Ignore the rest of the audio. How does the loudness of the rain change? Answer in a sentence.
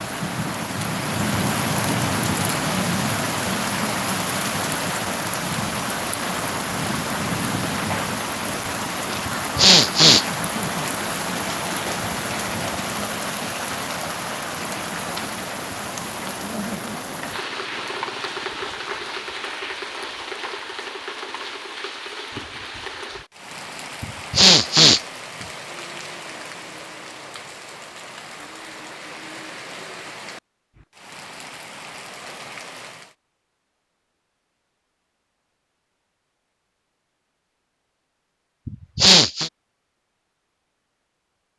The volume of the rain goes down.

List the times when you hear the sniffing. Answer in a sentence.
The sniffing can be heard from 9.2 to 10.2 s, from 24.0 to 25.0 s and from 38.6 to 39.5 s.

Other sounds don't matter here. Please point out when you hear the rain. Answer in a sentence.
You can hear the rain from 0.0 to 33.1 s.